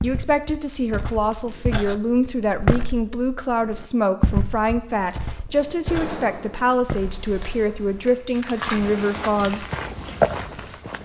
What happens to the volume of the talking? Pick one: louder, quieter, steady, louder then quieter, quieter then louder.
steady.